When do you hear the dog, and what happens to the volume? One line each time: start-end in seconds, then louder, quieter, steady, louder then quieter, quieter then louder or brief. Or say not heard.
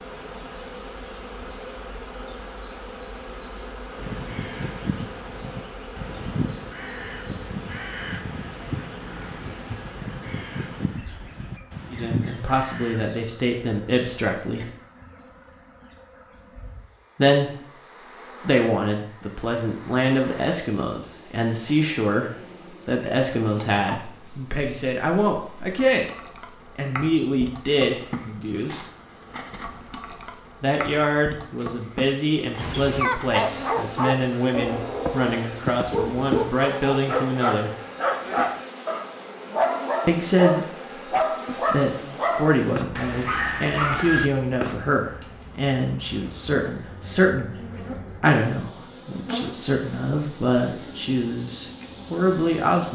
32.5-44.3 steady.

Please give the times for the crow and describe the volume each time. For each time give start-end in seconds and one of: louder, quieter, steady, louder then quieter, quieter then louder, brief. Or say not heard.
4.0-13.1 steady.